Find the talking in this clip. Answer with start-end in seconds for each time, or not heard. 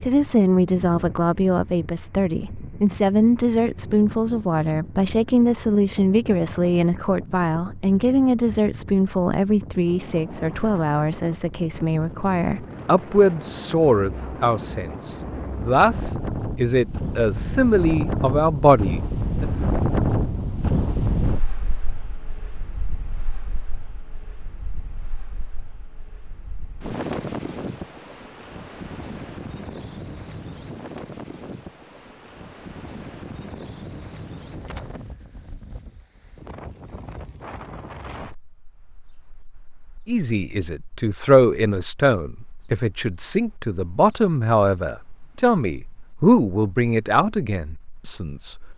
0.0-19.4, 40.0-48.5.